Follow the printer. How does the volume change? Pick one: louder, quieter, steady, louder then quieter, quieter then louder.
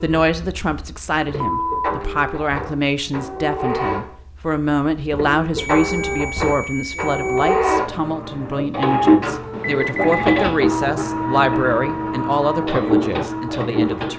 louder.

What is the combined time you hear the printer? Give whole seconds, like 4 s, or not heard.
14 s.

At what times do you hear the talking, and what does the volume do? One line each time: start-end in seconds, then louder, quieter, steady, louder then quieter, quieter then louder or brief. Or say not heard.
0.0-14.1 steady.